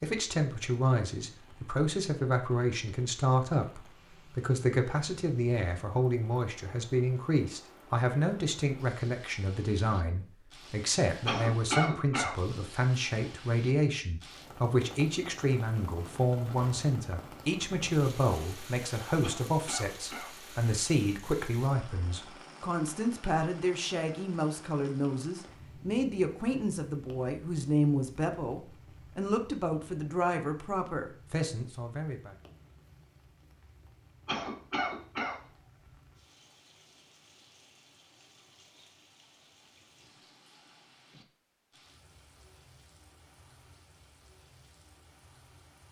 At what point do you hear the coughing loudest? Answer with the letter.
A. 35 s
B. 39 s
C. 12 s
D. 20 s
C.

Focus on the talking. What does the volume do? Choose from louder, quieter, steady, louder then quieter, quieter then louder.
steady.